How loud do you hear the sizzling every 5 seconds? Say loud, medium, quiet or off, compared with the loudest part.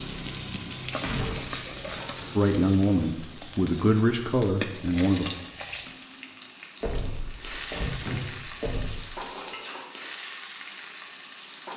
loud, loud, medium.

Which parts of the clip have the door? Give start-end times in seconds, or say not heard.
1.0-2.3, 6.8-8.9.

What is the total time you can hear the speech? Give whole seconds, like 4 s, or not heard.
3 s.